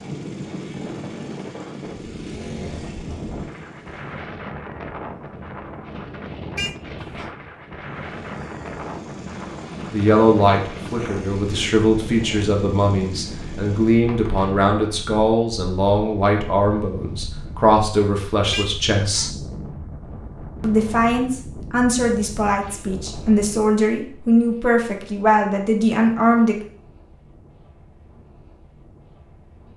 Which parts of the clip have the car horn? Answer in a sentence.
The car horn can be heard from 6.5 to 7.3 s and from 18.5 to 19.3 s.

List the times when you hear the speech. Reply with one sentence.
You can hear the speech from 9.9 to 19.3 s and from 20.6 to 26.6 s.